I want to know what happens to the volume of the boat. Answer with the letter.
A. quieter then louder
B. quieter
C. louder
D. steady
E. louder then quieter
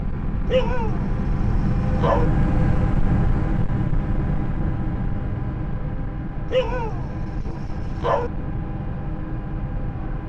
B.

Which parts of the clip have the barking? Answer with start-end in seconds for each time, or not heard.
0.5-2.3, 6.5-8.3.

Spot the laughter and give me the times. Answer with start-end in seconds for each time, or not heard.
not heard.